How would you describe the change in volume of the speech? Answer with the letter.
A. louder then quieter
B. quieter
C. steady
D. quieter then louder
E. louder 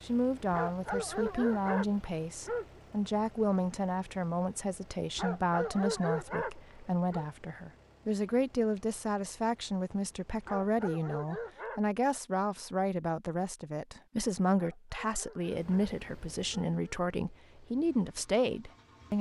C.